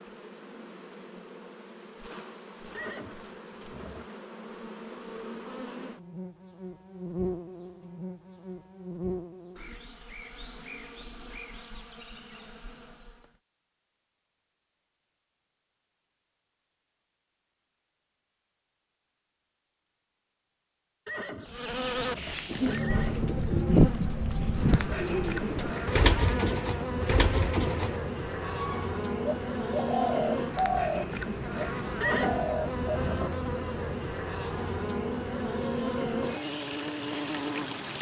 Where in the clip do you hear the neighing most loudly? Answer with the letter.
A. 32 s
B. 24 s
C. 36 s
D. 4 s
A.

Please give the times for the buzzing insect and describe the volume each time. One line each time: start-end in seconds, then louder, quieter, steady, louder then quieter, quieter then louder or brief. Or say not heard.
0.0-13.4 louder then quieter
21.4-37.9 steady.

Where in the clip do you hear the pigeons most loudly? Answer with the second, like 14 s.
24 s.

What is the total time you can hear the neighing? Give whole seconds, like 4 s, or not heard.
5 s.